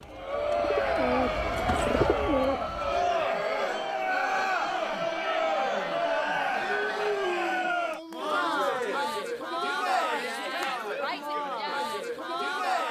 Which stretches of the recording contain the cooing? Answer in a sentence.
The cooing can be heard from 0.0 to 3.3 s.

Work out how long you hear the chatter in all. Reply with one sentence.
The chatter can be heard for 13 seconds in total.